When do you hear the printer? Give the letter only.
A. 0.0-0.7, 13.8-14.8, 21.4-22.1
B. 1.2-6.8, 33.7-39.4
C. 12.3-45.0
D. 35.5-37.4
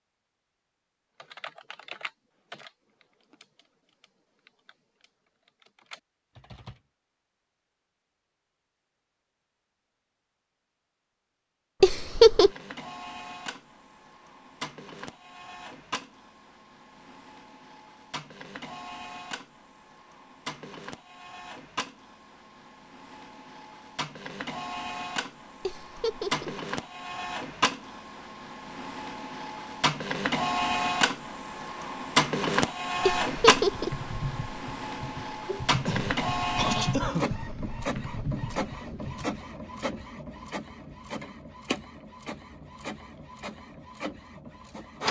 C.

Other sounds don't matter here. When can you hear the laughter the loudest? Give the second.
12 s.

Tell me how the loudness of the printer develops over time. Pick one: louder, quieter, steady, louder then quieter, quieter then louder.
louder then quieter.